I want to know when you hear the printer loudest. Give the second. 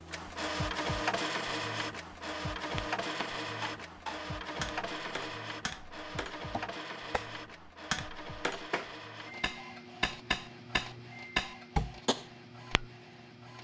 1 s.